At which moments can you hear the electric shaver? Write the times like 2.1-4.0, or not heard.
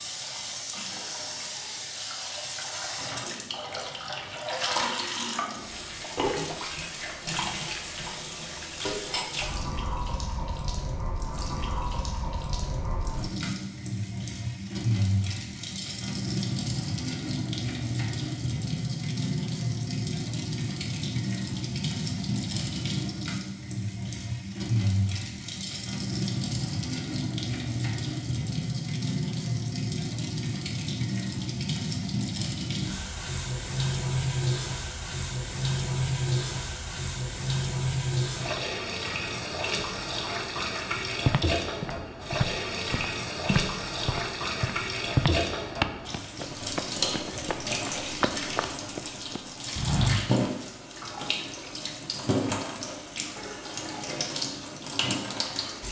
not heard.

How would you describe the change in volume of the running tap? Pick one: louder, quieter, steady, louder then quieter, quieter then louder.
steady.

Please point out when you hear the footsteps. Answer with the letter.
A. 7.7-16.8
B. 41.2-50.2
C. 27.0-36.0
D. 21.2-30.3
B.